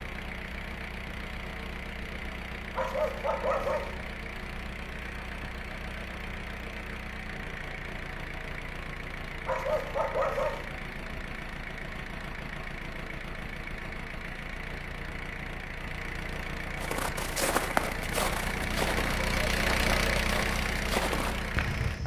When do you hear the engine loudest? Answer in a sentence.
The volume of the engine peaks at 20 seconds.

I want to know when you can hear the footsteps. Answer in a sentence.
The footsteps can be heard from 16.8 to 22.0 s.